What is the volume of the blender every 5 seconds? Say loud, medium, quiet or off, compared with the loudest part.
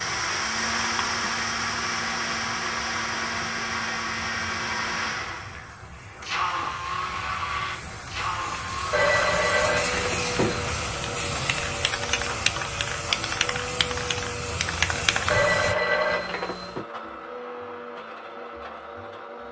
loud, loud, medium, medium.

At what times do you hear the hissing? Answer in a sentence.
You can hear the hissing from 0.0 to 15.8 s.